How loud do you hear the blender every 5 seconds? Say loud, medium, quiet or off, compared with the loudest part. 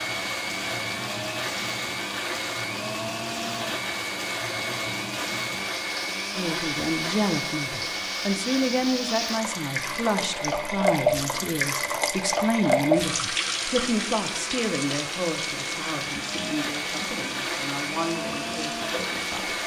loud, loud, medium, loud.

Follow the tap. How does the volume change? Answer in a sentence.
The loudness of the tap goes up, then down.